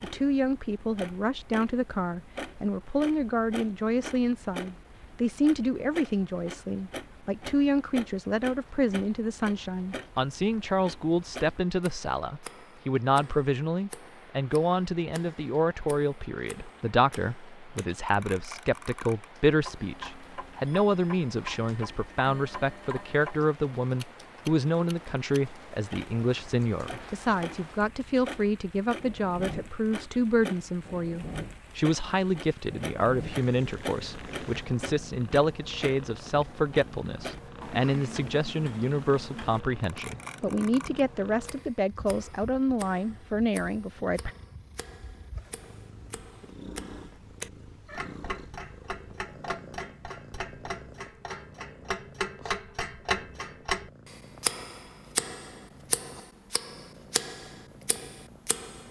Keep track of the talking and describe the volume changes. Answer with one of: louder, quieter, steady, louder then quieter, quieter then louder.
steady.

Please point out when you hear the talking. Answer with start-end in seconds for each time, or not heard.
0.0-44.3.